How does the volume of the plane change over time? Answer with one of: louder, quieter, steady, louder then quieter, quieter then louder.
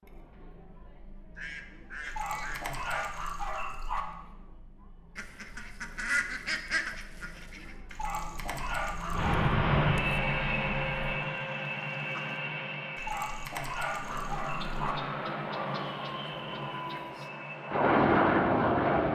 quieter then louder.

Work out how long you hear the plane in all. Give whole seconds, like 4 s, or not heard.
10 s.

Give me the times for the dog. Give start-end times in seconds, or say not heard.
2.0-4.0, 7.9-9.4, 12.9-14.9.